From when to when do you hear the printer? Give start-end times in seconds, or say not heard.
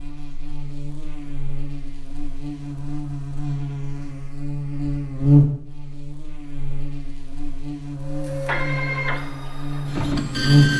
8.0-10.7.